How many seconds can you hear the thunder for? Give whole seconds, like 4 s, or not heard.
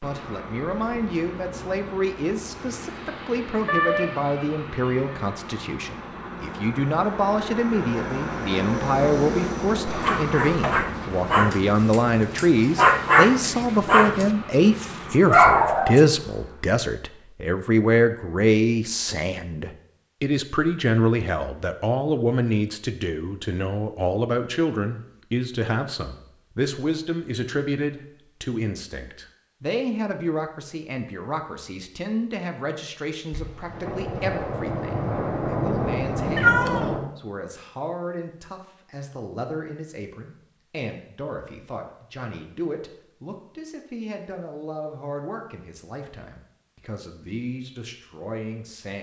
4 s.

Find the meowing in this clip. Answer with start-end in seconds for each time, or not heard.
3.6-5.0, 36.4-36.9.